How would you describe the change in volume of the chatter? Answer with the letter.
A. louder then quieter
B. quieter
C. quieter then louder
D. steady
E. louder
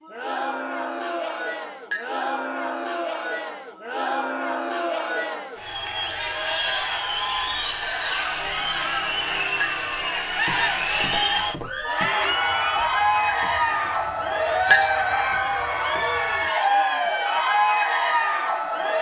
E.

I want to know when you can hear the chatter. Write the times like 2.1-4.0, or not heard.
0.0-18.9.